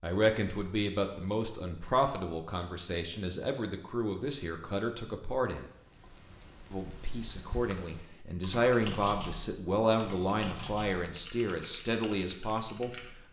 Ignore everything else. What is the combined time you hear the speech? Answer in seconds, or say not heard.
12 s.